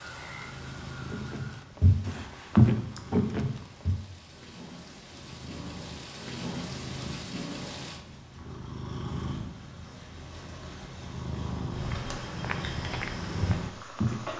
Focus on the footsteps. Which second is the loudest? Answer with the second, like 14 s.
3 s.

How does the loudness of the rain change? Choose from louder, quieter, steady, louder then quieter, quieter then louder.
quieter then louder.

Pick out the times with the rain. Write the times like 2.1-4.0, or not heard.
0.0-8.0.